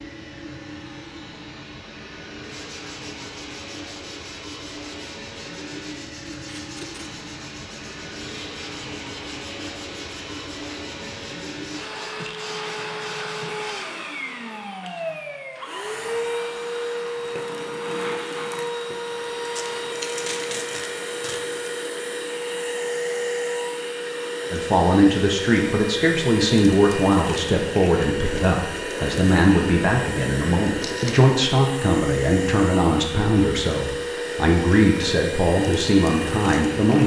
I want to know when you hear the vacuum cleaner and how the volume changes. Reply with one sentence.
The vacuum cleaner can be heard from 0.0 to 37.0 s, getting louder.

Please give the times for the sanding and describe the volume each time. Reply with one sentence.
You can hear the sanding from 2.4 to 13.8 s, at a steady volume.